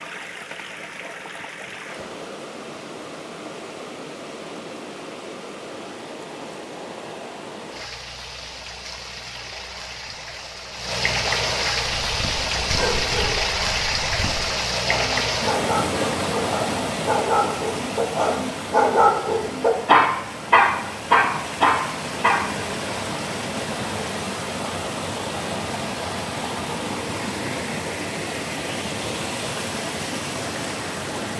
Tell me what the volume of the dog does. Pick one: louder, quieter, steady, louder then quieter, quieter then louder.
louder.